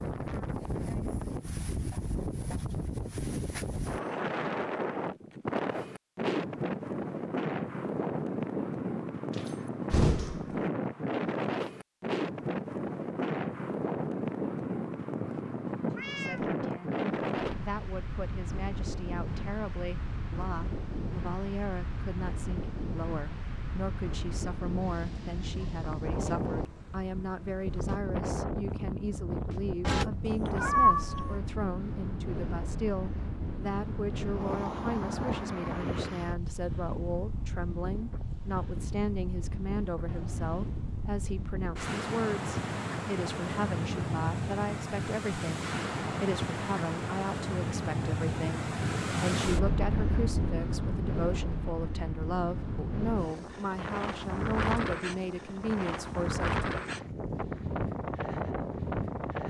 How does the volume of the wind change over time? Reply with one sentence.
The loudness of the wind stays about the same.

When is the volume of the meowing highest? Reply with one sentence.
The volume of the meowing peaks at 31 seconds.